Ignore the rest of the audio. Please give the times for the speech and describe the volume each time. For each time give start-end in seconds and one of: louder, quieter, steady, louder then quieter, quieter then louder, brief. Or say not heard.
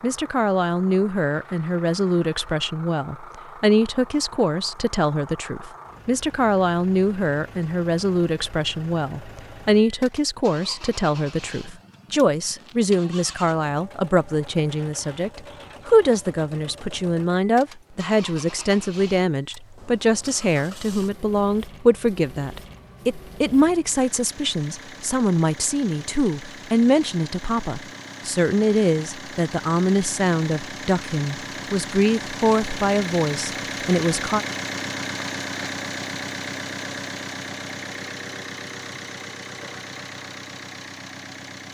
0.0-34.5 steady.